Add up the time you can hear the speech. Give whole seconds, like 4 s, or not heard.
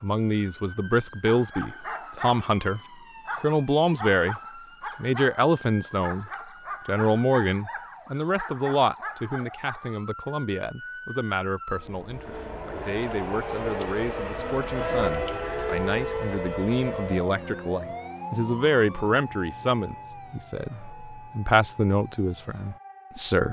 23 s.